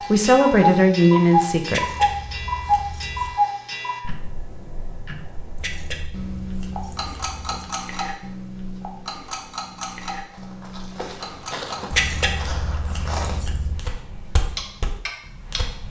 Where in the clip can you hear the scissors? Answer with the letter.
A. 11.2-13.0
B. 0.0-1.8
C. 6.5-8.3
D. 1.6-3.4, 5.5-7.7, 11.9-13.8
D.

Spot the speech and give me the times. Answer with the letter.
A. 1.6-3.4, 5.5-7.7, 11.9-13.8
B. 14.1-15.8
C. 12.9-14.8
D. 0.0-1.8
D.